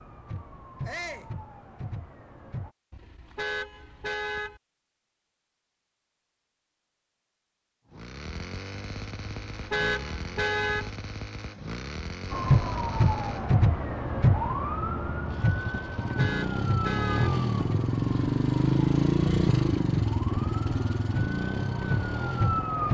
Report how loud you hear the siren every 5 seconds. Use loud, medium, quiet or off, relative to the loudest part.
quiet, off, loud, medium, medium.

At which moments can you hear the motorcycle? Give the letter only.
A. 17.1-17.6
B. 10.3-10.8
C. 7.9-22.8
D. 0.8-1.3
C.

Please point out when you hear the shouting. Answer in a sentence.
You can hear the shouting from 0.8 to 1.3 s.